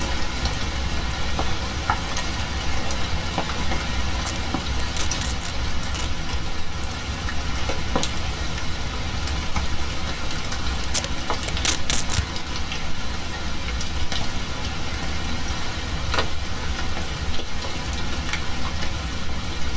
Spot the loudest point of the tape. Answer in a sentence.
The volume of the tape peaks at 12 seconds.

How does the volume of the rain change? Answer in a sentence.
The loudness of the rain stays about the same.